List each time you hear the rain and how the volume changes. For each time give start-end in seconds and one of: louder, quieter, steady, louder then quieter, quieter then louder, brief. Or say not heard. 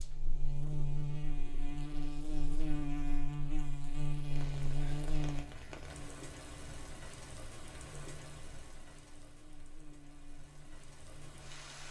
4.3-11.8 quieter.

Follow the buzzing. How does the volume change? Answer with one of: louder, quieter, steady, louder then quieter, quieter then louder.
quieter.